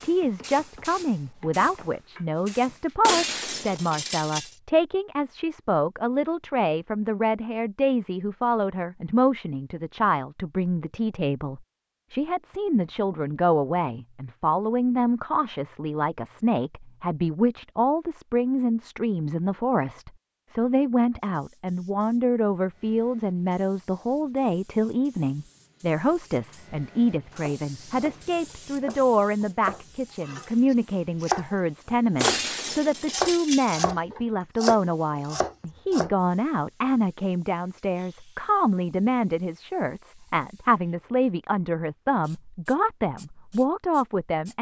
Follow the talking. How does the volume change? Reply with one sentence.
The volume of the talking stays about the same.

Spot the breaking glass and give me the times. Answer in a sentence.
You can hear the breaking glass from 3.0 to 4.5 s and from 32.2 to 34.0 s.